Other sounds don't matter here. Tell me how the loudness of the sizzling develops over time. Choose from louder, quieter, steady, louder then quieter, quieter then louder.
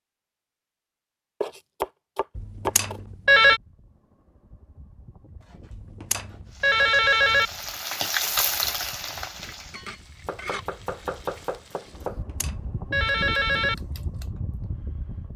louder then quieter.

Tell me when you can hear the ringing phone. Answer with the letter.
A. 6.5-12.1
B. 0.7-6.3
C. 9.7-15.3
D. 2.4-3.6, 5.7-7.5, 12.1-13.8
D.